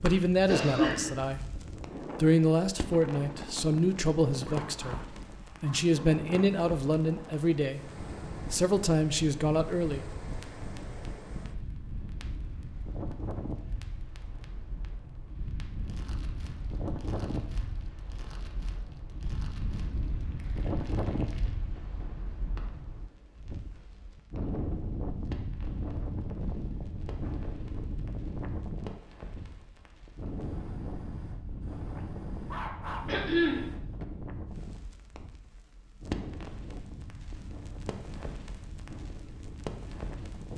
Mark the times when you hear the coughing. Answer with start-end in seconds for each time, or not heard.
0.5-1.1, 33.0-33.6.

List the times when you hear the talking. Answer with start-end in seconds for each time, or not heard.
0.0-10.1.